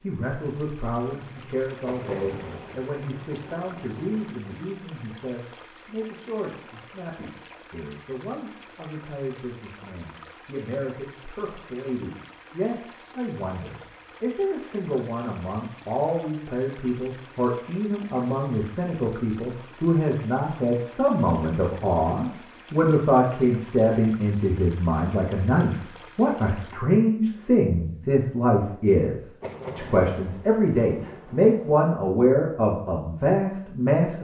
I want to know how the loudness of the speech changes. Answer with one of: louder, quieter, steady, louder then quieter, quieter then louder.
louder.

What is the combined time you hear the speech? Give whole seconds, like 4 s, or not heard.
34 s.